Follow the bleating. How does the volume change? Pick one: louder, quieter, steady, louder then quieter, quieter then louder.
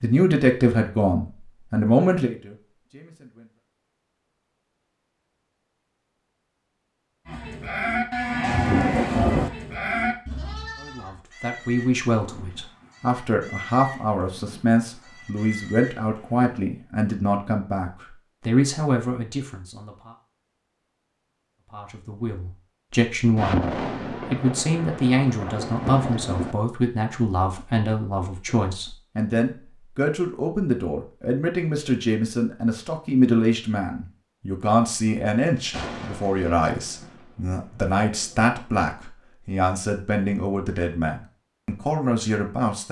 quieter.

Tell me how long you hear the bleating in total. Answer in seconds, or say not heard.
9 s.